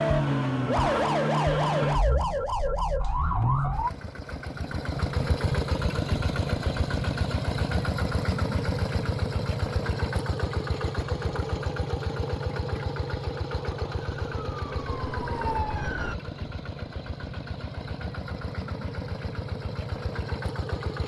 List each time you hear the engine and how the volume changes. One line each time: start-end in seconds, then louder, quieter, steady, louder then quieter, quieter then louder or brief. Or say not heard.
0.0-21.0 quieter.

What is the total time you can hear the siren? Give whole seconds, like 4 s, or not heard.
6 s.